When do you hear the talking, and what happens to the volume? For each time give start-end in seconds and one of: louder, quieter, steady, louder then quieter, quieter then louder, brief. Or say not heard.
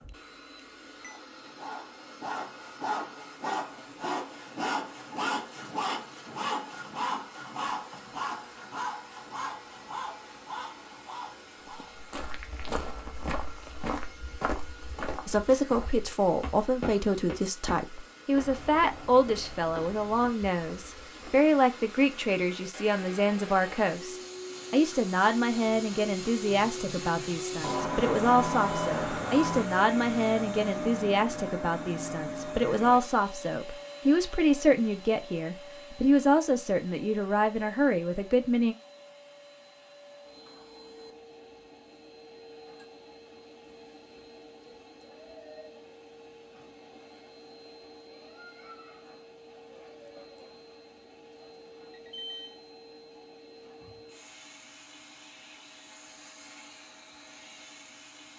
15.2-38.8 steady.